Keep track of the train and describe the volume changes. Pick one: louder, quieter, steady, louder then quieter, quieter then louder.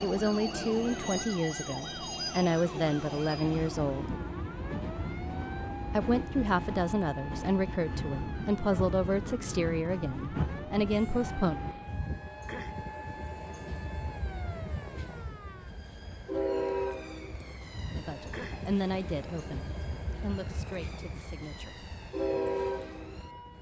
steady.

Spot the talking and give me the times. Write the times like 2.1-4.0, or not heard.
0.0-4.2, 5.9-11.6, 17.9-21.9.